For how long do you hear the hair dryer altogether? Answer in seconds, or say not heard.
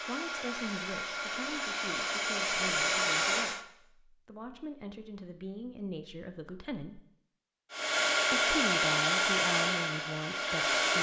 7 s.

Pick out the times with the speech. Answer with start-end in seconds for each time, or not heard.
0.1-7.0, 8.3-10.9.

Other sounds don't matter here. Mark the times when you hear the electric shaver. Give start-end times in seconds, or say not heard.
not heard.